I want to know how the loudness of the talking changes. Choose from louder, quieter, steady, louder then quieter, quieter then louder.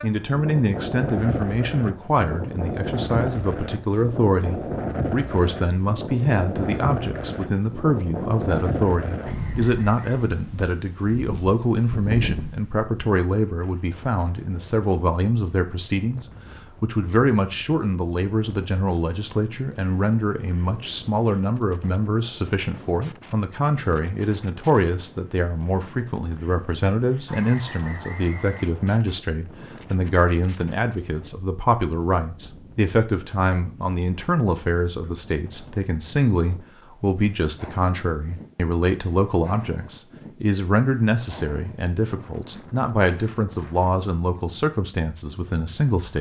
steady.